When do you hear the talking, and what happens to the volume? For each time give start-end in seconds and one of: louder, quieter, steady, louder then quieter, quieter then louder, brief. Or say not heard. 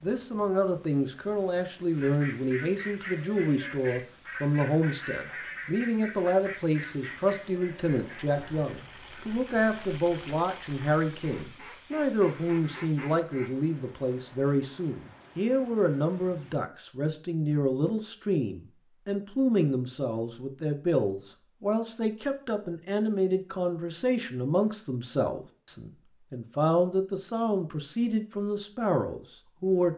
0.0-29.9 steady.